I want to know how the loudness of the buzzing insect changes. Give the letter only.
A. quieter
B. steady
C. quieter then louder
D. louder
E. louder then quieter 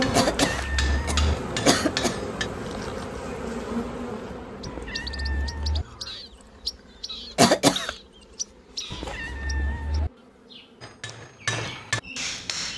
A.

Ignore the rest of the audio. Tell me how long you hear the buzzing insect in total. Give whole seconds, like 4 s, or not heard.
13 s.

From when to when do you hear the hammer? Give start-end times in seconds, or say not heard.
0.0-2.5, 10.8-12.7.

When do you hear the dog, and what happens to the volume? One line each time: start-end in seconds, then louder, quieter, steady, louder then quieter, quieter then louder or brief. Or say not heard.
not heard.